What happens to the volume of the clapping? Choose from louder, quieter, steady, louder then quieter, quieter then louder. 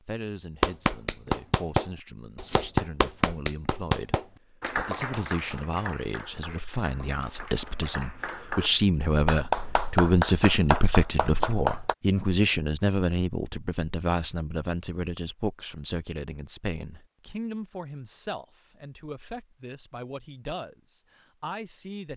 quieter then louder.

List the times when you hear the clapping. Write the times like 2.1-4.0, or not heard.
0.6-11.9.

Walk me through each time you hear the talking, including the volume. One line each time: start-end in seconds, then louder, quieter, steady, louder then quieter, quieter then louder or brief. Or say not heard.
0.0-22.1 louder then quieter.